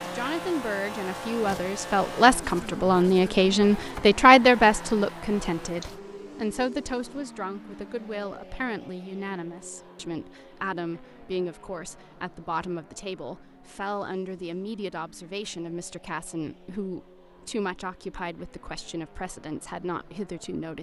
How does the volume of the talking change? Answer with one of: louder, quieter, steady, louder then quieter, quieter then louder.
quieter.